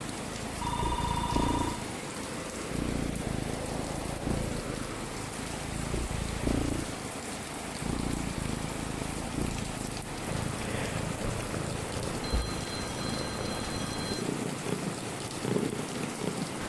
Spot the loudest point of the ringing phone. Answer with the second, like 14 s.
1 s.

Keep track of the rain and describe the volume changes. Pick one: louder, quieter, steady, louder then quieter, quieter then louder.
steady.